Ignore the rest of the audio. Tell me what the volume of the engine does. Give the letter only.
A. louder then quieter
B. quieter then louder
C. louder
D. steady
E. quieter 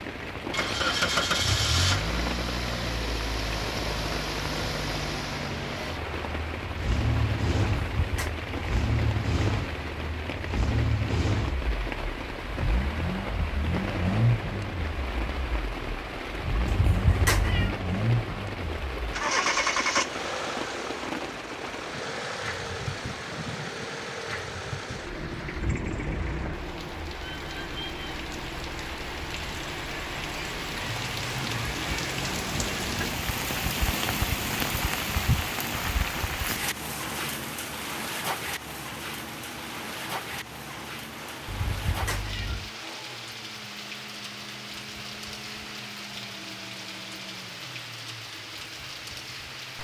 E.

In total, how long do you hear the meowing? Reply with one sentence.
You can hear the meowing for 3 seconds altogether.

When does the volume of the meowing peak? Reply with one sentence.
The loudest moment of the meowing is at 17 seconds.